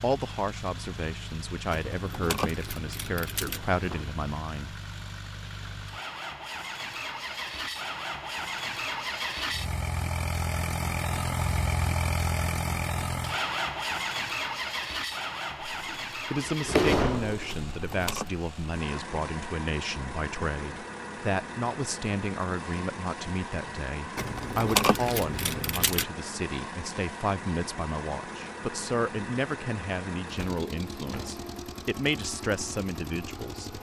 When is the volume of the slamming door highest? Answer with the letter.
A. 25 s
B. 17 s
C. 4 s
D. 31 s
B.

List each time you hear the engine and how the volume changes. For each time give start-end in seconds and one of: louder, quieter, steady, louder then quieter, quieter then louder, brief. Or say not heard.
0.0-33.7 louder then quieter.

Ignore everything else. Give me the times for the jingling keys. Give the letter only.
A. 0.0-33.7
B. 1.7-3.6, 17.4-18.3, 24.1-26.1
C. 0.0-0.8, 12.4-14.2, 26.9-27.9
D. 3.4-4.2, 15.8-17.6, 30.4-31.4
B.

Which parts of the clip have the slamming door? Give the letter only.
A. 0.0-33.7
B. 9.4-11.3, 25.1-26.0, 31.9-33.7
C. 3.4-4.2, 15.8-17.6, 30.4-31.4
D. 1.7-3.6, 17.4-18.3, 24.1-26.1
C.